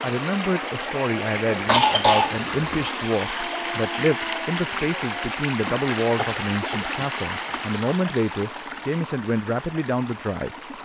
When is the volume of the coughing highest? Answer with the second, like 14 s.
2 s.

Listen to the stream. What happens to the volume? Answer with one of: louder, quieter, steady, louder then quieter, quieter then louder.
quieter.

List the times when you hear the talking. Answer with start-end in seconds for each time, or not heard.
0.0-10.8.